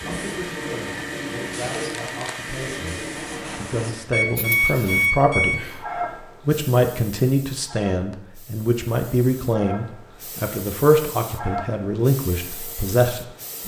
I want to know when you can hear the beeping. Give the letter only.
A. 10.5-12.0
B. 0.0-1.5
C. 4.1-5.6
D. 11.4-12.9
C.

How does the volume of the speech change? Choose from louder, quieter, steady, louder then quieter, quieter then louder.
louder.